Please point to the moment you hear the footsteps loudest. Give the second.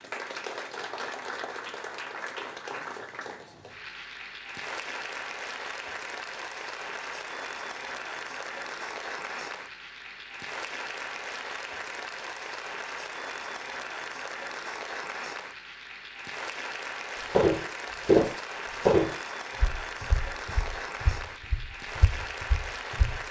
18 s.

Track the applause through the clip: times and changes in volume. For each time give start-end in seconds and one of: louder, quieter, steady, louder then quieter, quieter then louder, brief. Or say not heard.
0.0-23.2 steady.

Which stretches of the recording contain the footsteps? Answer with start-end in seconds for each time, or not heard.
17.3-23.2.